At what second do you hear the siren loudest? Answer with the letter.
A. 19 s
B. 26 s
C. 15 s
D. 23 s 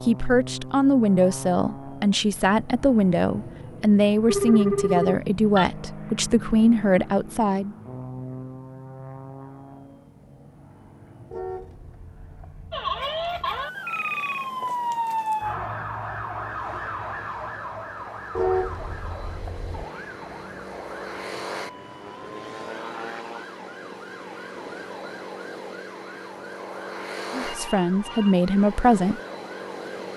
C.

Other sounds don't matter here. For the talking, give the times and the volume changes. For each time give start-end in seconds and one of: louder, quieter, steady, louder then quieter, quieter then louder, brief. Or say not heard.
0.0-7.8 steady
27.3-29.2 brief.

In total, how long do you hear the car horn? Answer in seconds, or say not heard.
3 s.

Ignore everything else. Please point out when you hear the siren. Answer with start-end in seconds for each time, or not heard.
12.7-30.1.